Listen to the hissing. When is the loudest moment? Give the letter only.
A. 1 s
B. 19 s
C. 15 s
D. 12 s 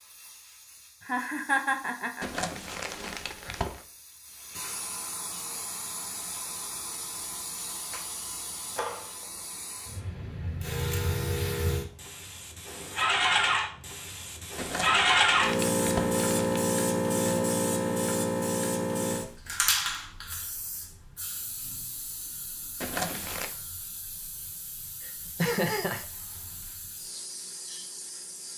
C.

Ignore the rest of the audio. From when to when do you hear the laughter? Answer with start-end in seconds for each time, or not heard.
1.1-2.2, 25.0-26.1.